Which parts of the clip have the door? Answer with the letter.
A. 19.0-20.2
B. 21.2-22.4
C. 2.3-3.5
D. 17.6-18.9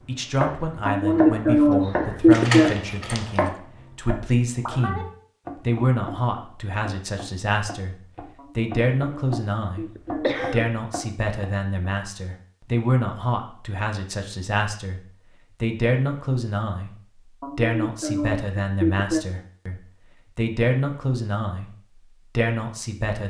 C.